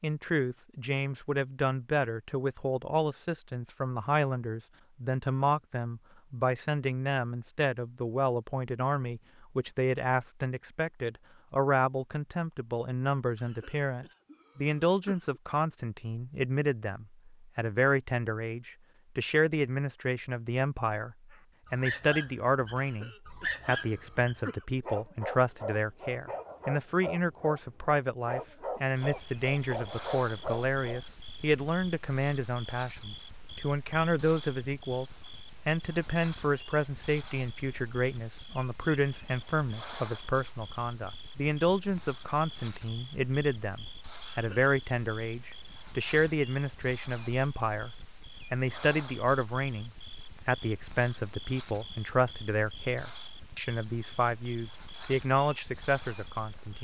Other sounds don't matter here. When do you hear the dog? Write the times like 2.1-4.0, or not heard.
21.3-31.0.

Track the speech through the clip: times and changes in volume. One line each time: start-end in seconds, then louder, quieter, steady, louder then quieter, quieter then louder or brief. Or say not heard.
0.0-35.0 steady
35.6-56.7 steady.